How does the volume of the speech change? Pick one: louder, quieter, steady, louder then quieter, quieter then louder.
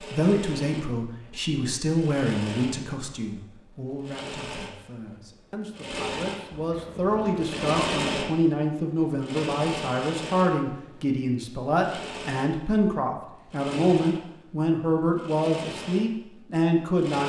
quieter then louder.